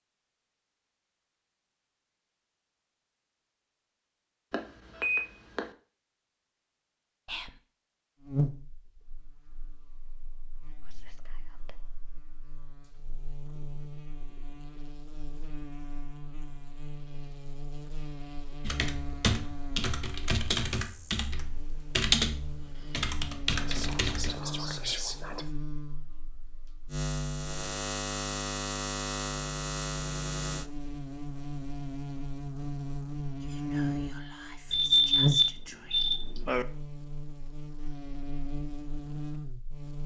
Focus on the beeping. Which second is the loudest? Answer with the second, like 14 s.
35 s.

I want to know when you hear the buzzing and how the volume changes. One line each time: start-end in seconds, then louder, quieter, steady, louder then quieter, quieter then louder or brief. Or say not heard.
8.2-40.0 louder.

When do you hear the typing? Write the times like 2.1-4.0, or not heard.
18.6-24.4.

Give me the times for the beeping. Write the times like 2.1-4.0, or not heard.
4.5-5.7, 34.7-36.6.